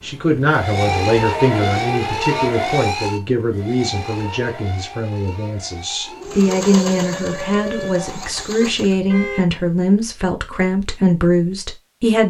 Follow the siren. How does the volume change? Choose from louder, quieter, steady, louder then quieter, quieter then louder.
quieter then louder.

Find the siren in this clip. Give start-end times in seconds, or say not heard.
0.0-8.3.